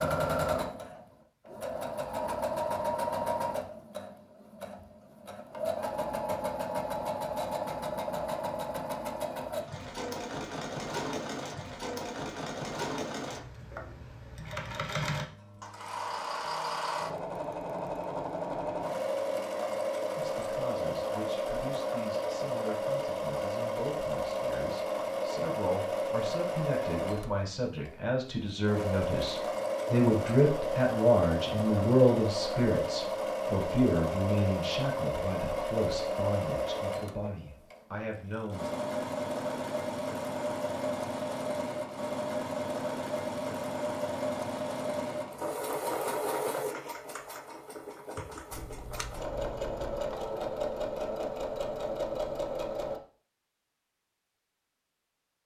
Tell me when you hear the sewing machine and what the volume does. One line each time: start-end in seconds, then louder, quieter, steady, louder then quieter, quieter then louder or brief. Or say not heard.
0.0-53.0 steady.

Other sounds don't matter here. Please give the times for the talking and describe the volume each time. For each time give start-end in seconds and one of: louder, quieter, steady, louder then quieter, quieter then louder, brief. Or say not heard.
20.1-38.7 louder then quieter.